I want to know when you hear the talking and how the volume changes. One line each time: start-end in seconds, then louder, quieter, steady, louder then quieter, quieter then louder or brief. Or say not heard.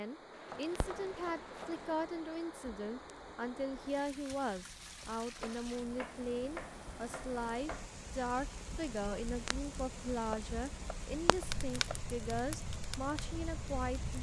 0.0-14.1 steady.